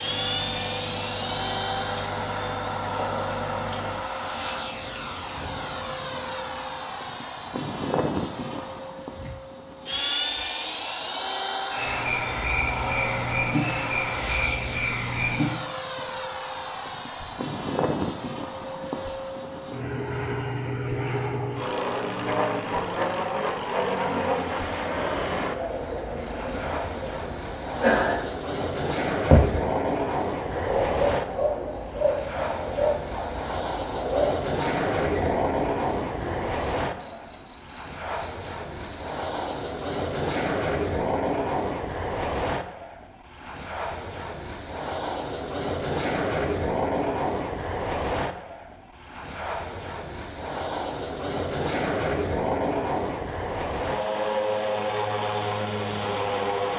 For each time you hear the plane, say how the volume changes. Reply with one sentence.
You can hear the plane from 0.0 to 56.7 s, at a steady volume.